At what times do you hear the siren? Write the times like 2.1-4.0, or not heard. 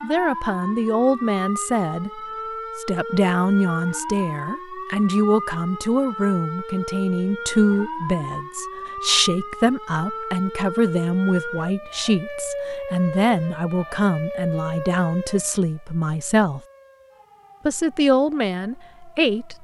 0.0-19.5.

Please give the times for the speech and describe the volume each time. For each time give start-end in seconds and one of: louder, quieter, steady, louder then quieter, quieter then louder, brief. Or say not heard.
0.0-16.6 steady
17.6-19.5 brief.